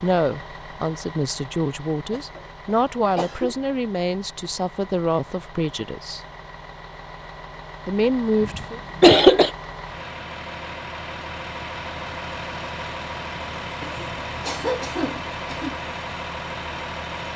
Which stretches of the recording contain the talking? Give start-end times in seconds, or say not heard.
0.0-6.2, 7.8-8.8.